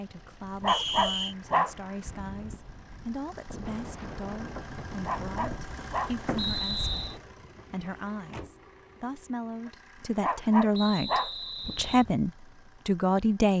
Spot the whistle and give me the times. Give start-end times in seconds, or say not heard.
0.7-1.4, 6.3-7.2, 10.7-12.1.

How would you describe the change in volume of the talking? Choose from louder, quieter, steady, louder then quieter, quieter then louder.
louder.